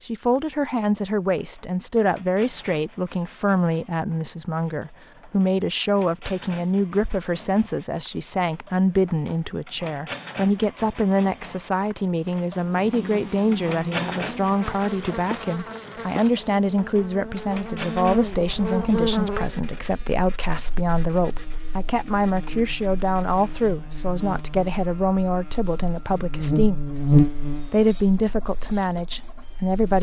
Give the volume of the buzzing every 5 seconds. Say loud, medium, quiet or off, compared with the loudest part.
off, off, medium, medium, quiet, loud.